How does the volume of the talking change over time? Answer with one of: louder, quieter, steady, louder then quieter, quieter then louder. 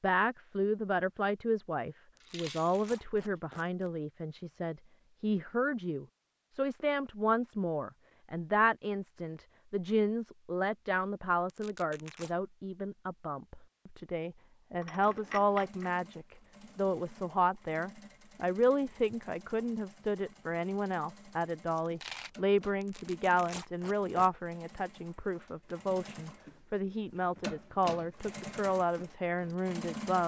steady.